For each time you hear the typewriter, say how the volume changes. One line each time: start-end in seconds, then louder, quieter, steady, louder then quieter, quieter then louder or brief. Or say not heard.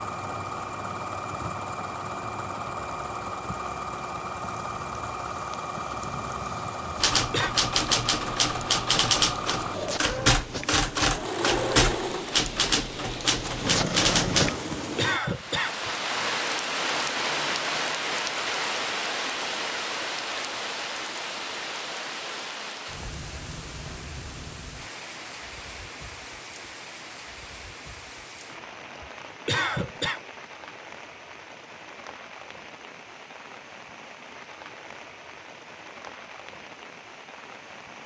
7.0-14.6 steady.